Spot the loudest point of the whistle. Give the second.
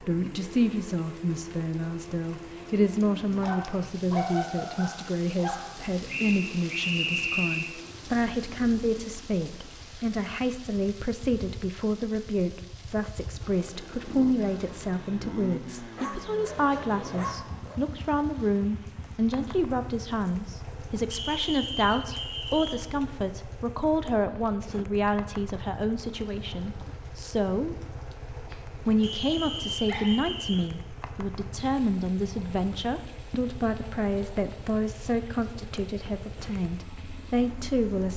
7 s.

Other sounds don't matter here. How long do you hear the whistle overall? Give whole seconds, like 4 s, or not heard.
5 s.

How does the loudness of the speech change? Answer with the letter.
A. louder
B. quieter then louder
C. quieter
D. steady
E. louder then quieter
D.